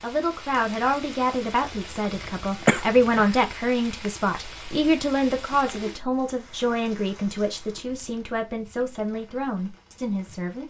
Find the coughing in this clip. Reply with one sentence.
The coughing can be heard from 2.1 to 3.2 s.